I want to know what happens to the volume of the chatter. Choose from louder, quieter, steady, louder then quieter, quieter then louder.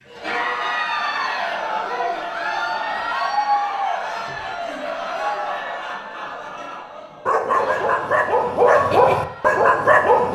quieter.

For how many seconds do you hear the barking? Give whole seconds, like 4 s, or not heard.
3 s.